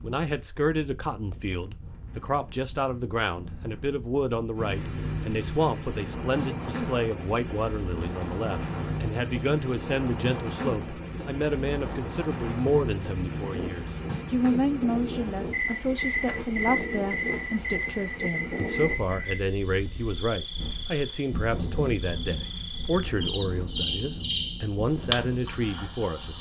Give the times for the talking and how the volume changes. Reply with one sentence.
You can hear the talking from 0.0 to 26.3 s, at a steady volume.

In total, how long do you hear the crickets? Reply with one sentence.
The crickets can be heard for 22 seconds in total.